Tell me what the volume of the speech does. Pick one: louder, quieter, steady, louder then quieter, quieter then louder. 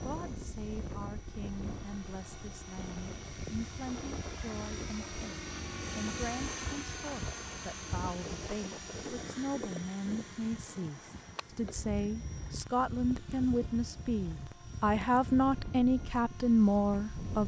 louder.